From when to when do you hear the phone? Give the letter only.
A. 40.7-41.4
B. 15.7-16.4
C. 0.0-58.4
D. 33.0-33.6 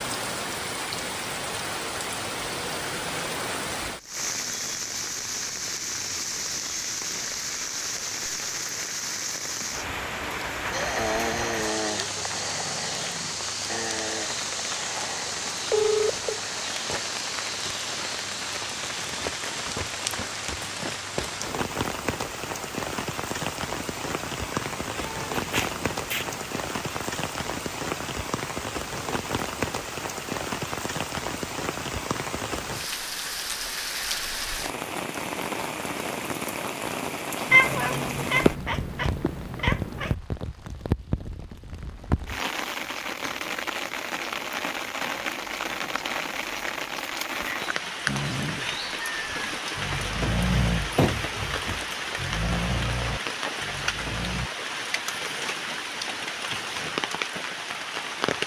B.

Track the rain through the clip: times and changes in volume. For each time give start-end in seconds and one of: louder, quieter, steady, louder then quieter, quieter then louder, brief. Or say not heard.
0.0-58.4 steady.